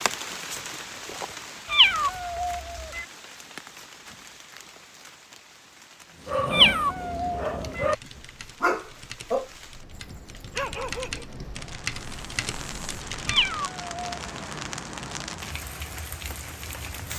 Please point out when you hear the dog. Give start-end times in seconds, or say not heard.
6.0-11.2.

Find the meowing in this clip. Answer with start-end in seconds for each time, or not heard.
1.7-3.0, 6.5-7.8, 13.2-14.1.